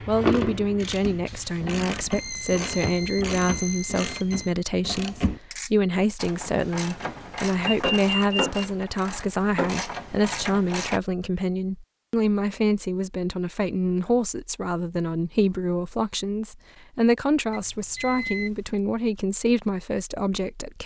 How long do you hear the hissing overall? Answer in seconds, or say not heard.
2 s.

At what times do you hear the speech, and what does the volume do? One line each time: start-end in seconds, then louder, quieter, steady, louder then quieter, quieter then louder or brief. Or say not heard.
0.1-20.8 steady.